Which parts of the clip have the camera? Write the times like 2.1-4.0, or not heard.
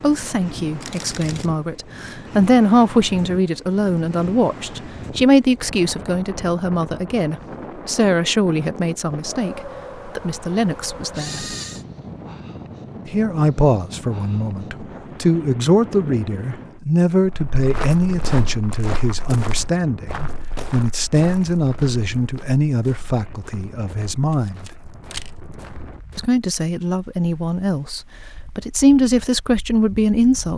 0.8-1.5, 11.1-11.8, 24.3-25.3.